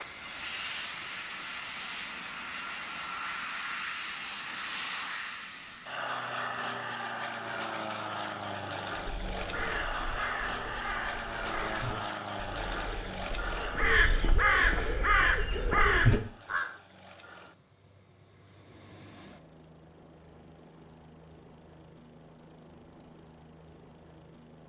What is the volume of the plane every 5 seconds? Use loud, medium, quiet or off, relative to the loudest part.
loud, loud, loud, quiet, quiet.